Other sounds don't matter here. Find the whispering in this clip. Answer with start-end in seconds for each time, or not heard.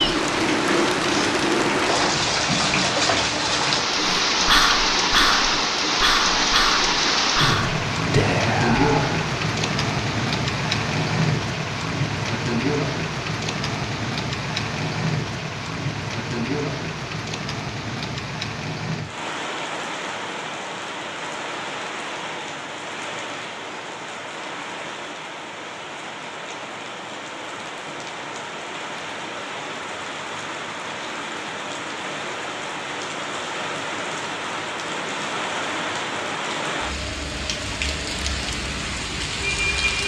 4.0-9.2.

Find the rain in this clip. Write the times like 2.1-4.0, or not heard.
0.0-40.0.